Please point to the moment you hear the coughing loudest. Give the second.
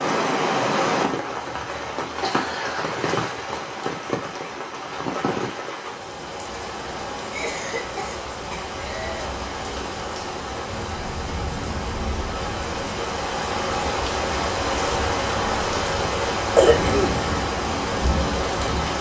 17 s.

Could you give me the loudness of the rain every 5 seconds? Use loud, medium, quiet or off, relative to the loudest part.
loud, medium, loud, loud.